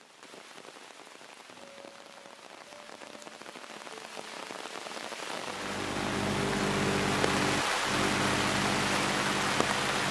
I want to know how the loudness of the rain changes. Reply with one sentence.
The loudness of the rain goes up.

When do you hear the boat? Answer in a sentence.
The boat can be heard from 5.5 to 10.0 s.